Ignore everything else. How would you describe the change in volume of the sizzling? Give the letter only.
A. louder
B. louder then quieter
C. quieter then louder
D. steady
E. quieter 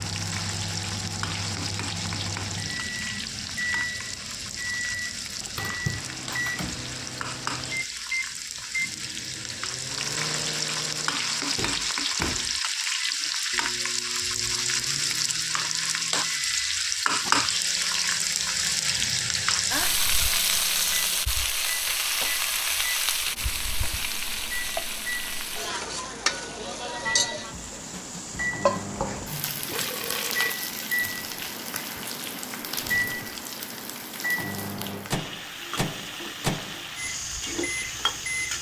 B.